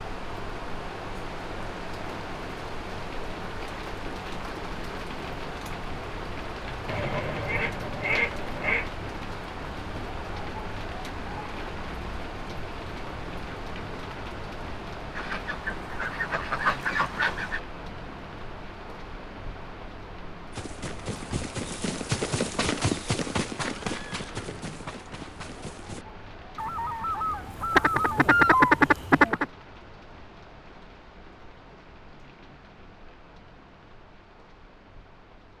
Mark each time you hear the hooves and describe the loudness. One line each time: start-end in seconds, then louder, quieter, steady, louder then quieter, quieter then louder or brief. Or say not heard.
20.5-26.1 louder then quieter.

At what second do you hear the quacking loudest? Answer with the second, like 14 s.
29 s.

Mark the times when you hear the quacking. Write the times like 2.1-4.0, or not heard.
6.8-8.9, 15.2-17.6, 26.6-29.4.